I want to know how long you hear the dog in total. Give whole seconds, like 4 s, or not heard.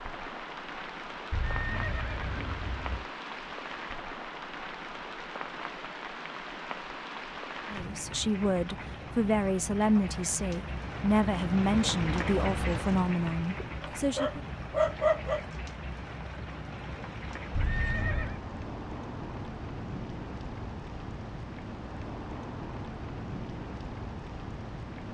2 s.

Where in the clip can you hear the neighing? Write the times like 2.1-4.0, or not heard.
1.3-3.0, 17.6-18.4.